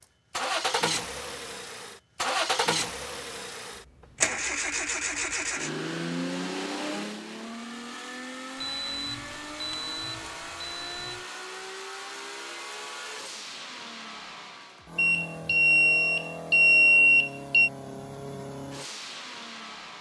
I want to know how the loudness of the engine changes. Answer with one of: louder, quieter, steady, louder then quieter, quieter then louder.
quieter.